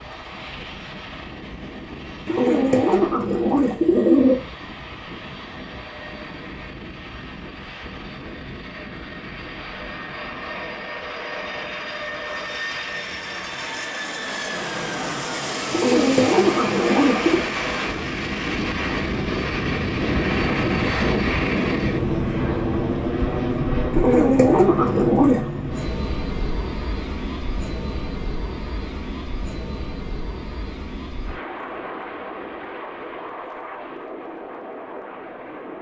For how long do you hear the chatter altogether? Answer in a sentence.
You can't hear the chatter here.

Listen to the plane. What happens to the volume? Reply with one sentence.
The loudness of the plane goes up, then down.